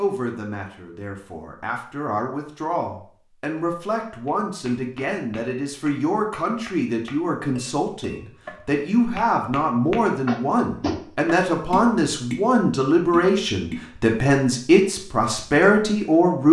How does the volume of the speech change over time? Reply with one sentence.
The loudness of the speech goes up.